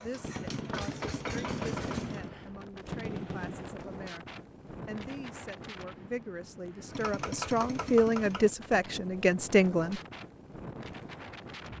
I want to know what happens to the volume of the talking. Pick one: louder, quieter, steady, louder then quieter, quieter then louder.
louder.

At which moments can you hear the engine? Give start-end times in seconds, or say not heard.
0.0-2.3, 6.9-8.5.